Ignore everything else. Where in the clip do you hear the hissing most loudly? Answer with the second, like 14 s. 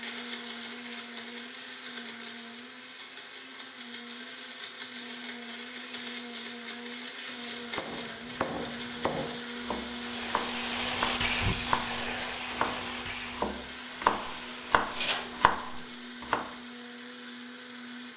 11 s.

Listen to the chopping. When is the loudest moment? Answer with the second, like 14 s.
14 s.